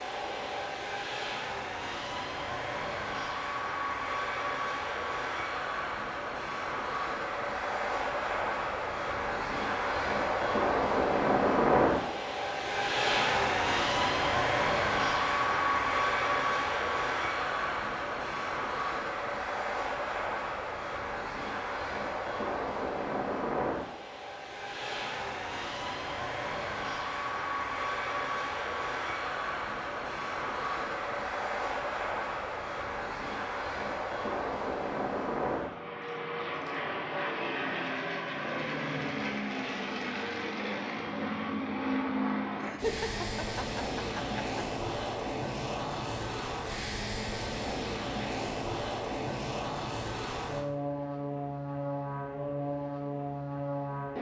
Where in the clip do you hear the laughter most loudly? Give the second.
43 s.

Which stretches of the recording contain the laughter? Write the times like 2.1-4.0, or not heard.
42.5-44.6.